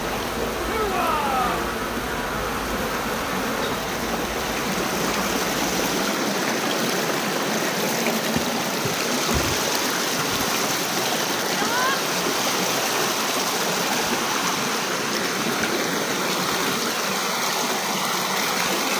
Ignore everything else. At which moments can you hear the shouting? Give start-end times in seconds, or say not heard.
0.7-1.7, 11.4-12.0.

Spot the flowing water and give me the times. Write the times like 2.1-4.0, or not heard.
0.0-18.9.